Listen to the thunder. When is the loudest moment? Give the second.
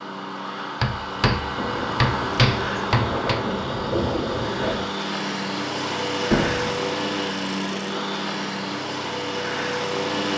4 s.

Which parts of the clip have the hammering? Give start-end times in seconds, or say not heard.
0.8-3.4, 6.3-6.8.